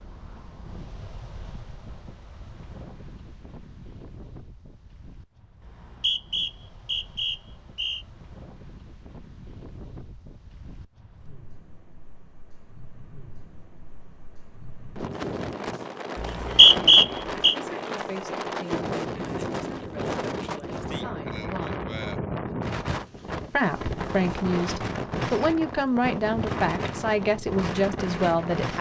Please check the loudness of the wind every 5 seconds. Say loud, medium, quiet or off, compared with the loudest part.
quiet, quiet, quiet, loud, loud, loud.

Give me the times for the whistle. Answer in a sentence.
The whistle can be heard from 5.6 to 8.1 s and from 16.1 to 17.6 s.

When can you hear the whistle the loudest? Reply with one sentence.
The loudest moment of the whistle is at 17 seconds.